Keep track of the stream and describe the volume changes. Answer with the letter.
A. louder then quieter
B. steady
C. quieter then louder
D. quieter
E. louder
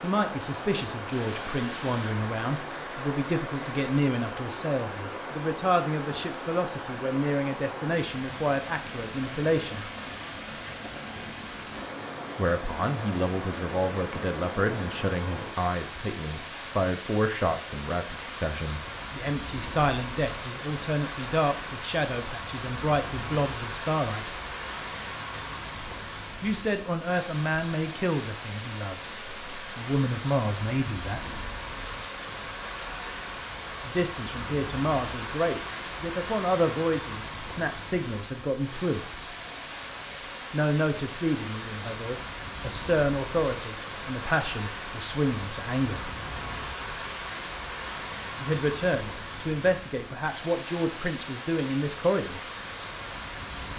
B.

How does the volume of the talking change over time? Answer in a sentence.
The loudness of the talking stays about the same.